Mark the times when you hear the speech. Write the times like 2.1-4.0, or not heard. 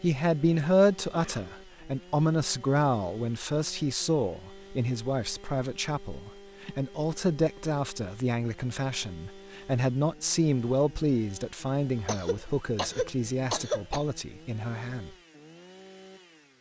0.0-15.2.